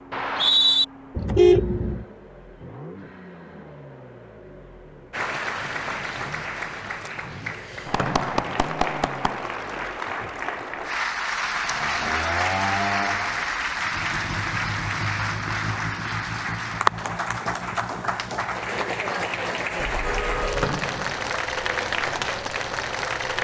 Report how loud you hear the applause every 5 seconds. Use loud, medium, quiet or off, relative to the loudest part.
off, loud, loud, loud, loud.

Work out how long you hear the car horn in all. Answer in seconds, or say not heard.
2 s.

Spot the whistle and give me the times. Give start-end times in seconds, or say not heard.
0.1-0.8, 8.0-8.8, 20.6-21.4.